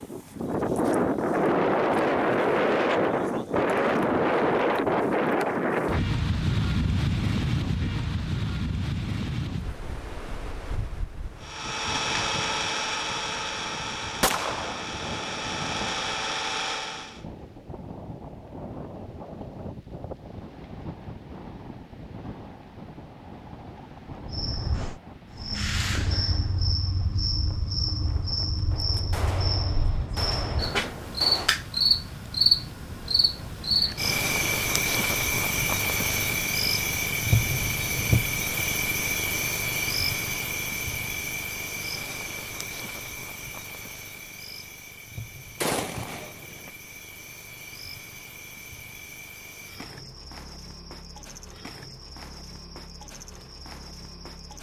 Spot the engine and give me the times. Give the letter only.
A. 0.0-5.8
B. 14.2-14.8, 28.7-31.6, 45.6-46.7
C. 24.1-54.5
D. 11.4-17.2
D.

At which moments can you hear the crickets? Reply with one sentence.
You can hear the crickets from 24.1 to 54.5 s.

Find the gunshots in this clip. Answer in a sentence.
The gunshots can be heard from 14.2 to 14.8 s, from 28.7 to 31.6 s and from 45.6 to 46.7 s.